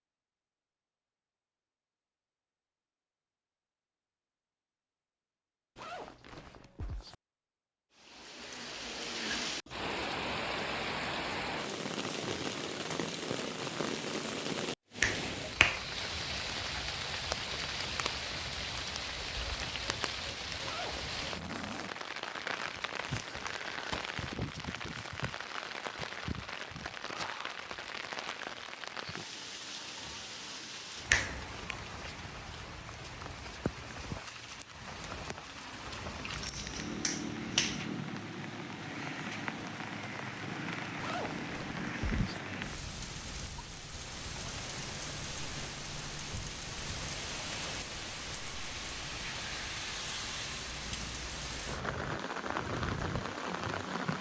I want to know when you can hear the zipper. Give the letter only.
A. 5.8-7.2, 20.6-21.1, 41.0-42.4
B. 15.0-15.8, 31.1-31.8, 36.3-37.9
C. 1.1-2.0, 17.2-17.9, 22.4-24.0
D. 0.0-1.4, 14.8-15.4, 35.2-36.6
A.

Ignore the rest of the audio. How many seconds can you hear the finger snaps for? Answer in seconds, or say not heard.
3 s.